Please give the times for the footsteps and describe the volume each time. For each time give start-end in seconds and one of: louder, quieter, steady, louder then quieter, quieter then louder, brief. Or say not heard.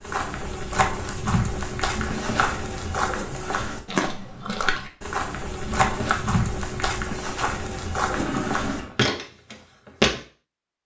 0.0-10.2 steady.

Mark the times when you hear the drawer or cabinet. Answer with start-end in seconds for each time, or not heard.
1.9-2.6, 5.6-6.5.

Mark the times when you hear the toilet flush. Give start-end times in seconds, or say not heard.
8.1-9.0.